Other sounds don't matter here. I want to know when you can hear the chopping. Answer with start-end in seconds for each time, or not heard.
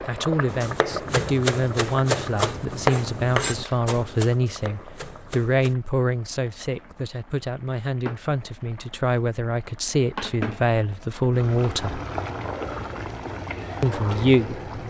0.5-5.8.